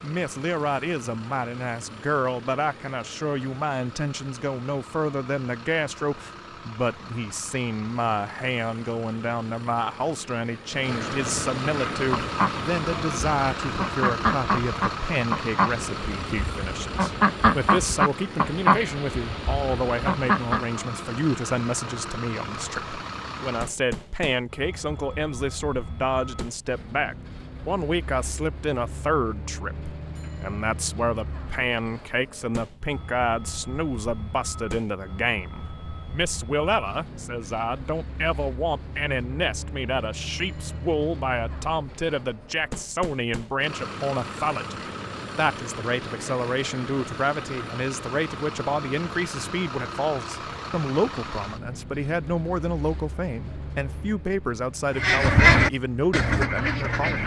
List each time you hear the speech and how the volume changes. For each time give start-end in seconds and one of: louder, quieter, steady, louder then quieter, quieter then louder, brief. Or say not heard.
0.0-57.2 steady.